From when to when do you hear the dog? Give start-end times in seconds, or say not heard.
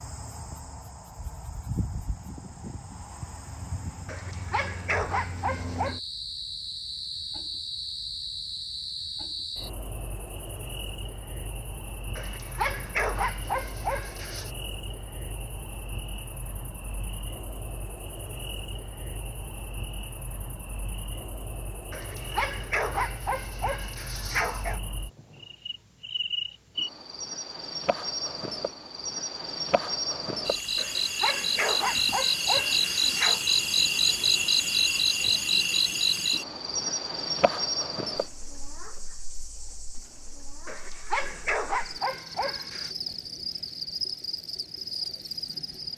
4.0-6.0, 12.2-14.5, 21.9-24.8, 30.8-33.5, 40.6-43.0.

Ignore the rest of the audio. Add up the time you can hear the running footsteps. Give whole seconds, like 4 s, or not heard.
not heard.